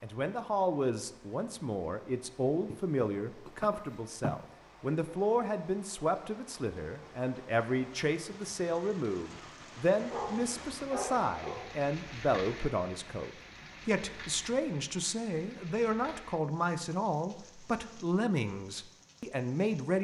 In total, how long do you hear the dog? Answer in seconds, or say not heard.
2 s.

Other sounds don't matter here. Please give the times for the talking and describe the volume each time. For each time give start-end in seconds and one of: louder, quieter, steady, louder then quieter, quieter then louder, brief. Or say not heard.
0.0-19.9 steady.